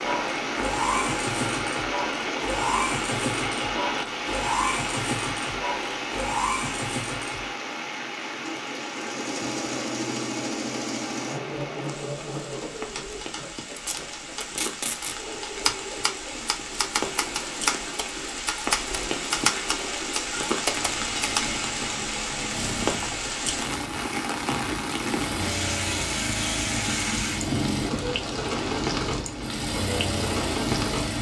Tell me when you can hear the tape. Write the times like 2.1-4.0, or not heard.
13.8-15.2.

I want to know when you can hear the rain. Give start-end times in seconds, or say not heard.
0.0-31.1.